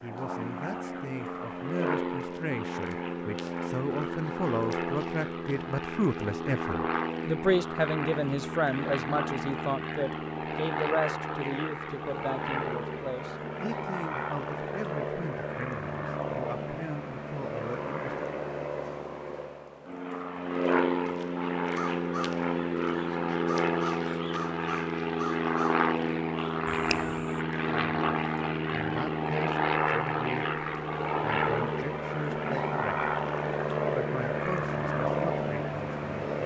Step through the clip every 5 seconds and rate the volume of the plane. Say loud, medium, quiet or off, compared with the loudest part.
medium, medium, medium, medium, loud, loud, loud, loud.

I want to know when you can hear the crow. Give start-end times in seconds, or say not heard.
21.6-27.4.